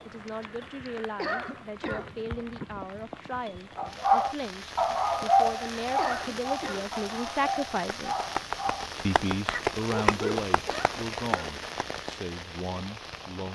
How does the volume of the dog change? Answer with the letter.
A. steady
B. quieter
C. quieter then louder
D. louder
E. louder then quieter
B.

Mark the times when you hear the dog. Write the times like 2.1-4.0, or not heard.
3.8-10.4.